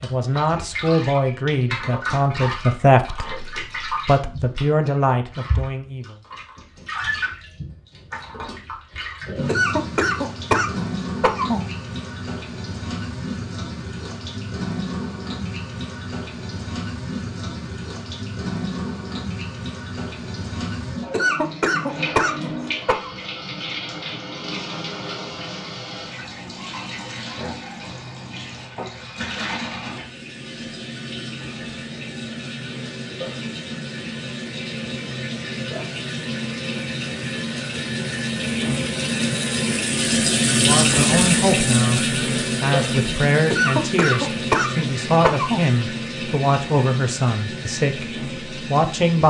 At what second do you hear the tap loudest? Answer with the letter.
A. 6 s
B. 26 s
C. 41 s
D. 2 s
C.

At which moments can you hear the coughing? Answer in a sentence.
You can hear the coughing from 9.4 to 11.6 s, from 21.1 to 23.1 s and from 43.5 to 45.6 s.